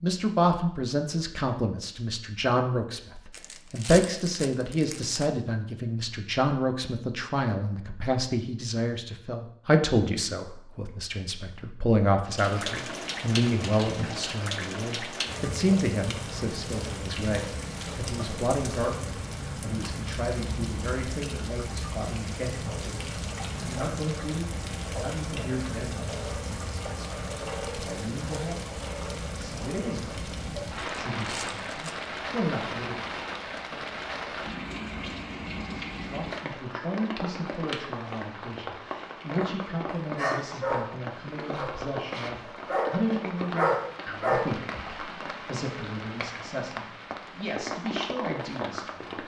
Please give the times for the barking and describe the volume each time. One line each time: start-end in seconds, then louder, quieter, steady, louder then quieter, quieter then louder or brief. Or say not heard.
40.1-44.5 quieter then louder.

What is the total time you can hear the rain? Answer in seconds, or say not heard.
37 s.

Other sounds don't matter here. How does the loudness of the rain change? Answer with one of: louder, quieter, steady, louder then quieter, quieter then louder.
steady.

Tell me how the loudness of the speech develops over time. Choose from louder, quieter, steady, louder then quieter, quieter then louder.
quieter.